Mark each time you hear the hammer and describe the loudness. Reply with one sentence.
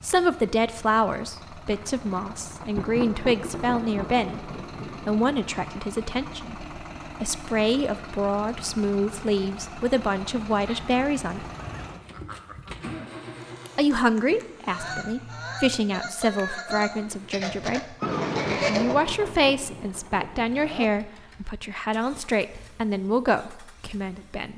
The hammer can't be heard in this clip.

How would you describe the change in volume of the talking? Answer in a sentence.
The volume of the talking stays about the same.